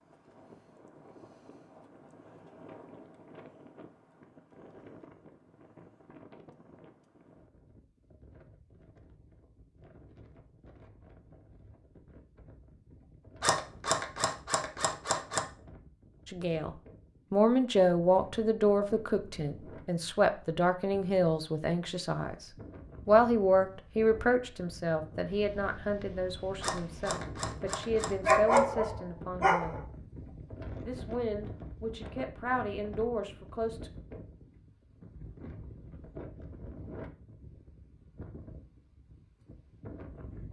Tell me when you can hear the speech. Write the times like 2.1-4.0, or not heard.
16.2-22.4, 23.1-29.8, 30.8-33.9.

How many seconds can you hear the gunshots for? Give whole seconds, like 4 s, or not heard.
4 s.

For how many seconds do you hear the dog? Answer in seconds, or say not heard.
2 s.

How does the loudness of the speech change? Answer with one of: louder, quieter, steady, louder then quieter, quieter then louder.
quieter.